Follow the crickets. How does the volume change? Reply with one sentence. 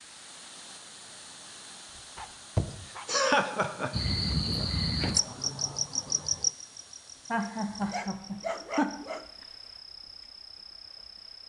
The volume of the crickets goes down.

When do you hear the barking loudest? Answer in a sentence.
The loudest moment of the barking is at 9 seconds.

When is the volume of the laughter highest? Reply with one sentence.
The loudest moment of the laughter is at 3 seconds.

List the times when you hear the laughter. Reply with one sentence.
The laughter can be heard from 2.5 to 3.9 s and from 7.3 to 8.9 s.